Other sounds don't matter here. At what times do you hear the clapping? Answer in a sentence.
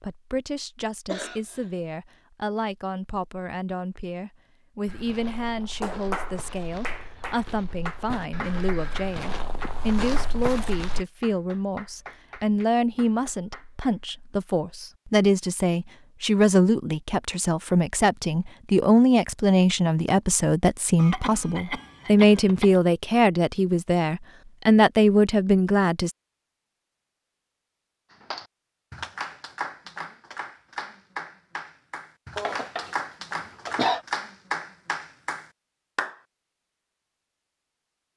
You can hear the clapping from 5.8 to 14.1 s and from 28.1 to 36.1 s.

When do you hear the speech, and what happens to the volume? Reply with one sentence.
The speech can be heard from 0.0 to 26.1 s, getting louder.